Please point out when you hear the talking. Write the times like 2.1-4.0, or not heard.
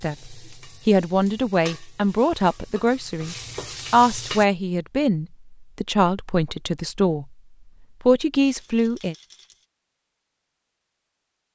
0.0-7.3, 8.0-9.2.